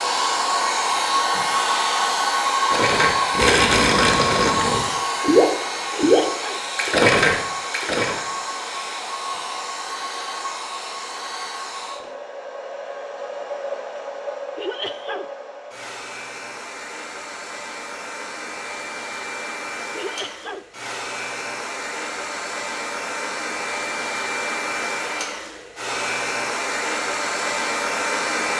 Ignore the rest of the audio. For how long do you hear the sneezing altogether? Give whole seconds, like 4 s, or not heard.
2 s.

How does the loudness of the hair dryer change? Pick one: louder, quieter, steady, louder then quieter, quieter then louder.
quieter then louder.